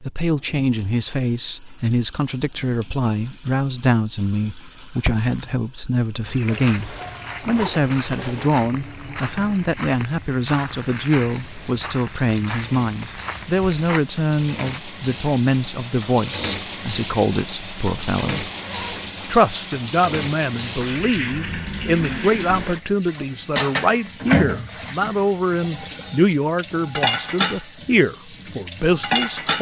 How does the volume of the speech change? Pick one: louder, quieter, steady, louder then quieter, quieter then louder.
steady.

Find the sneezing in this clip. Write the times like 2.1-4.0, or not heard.
not heard.